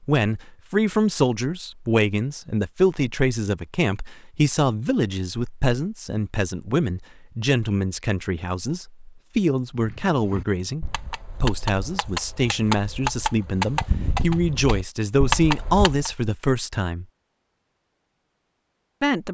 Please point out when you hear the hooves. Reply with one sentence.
The hooves can be heard from 9.8 to 16.1 s.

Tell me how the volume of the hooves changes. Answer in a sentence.
The volume of the hooves goes up.